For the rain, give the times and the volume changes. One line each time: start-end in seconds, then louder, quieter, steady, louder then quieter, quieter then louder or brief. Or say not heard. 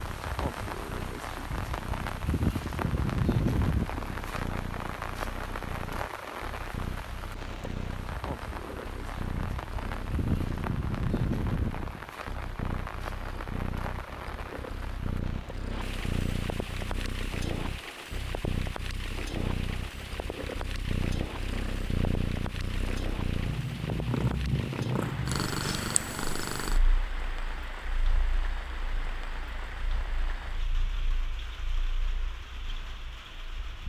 0.0-33.8 quieter.